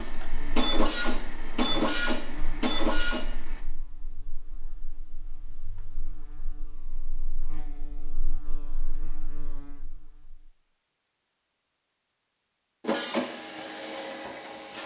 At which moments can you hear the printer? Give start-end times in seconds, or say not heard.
0.0-3.2, 12.8-14.8.